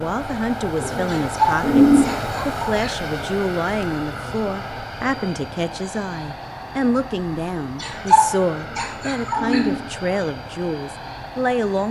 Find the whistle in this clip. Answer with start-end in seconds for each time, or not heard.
not heard.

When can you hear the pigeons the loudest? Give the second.
2 s.